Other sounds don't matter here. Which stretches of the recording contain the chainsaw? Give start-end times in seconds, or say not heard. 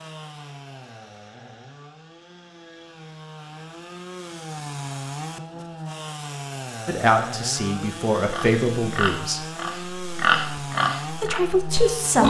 0.0-12.2.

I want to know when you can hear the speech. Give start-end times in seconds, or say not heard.
6.8-9.4, 11.2-12.2.